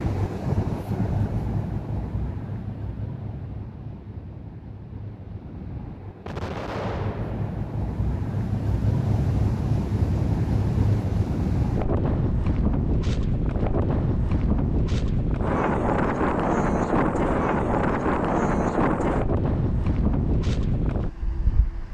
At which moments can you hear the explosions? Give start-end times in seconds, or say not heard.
6.2-7.7.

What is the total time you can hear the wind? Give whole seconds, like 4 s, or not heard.
22 s.